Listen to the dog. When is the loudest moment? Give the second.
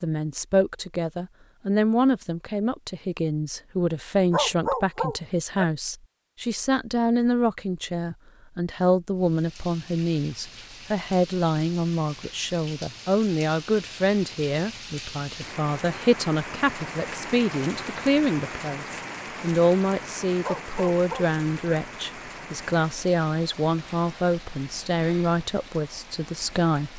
5 s.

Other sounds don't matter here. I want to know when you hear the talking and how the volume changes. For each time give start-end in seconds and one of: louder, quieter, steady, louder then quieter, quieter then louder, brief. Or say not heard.
0.0-26.9 steady.